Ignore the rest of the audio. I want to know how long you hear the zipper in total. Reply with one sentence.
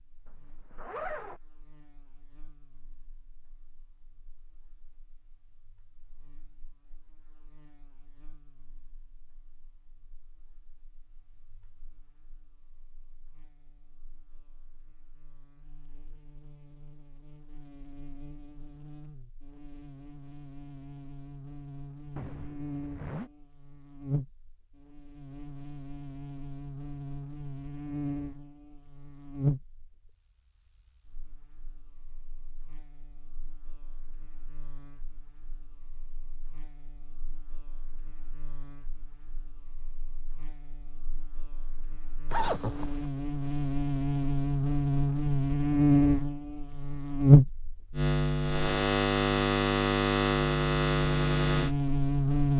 The zipper can be heard for 3 seconds in total.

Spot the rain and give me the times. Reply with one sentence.
You can't hear the rain here.